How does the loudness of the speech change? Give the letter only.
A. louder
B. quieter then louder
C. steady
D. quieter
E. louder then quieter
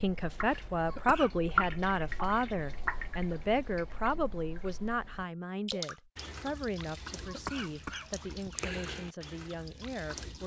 D.